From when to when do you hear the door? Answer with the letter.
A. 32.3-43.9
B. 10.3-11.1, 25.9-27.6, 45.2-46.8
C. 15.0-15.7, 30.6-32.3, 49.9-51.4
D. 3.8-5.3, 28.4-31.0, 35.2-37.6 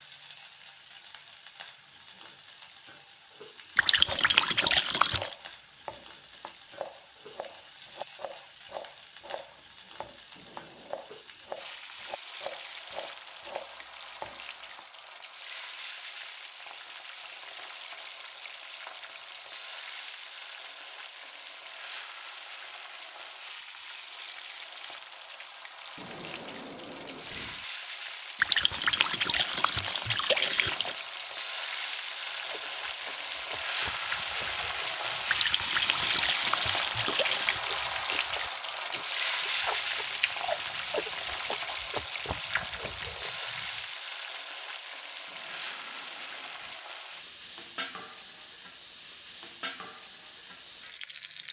B.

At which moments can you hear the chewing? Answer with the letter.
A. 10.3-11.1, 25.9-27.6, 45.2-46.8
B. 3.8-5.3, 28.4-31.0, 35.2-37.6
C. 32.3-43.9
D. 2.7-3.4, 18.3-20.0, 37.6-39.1
C.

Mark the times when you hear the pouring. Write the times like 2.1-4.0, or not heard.
3.8-5.3, 28.4-31.0, 35.2-37.6.